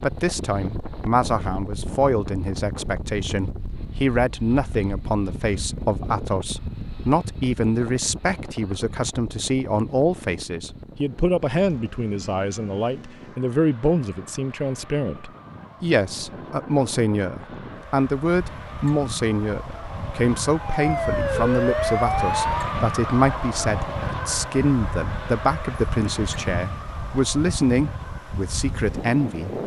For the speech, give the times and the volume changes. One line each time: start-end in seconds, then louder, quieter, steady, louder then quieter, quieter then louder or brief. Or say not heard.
0.0-29.6 steady.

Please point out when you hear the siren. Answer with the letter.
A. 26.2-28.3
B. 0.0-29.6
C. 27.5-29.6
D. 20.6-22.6
D.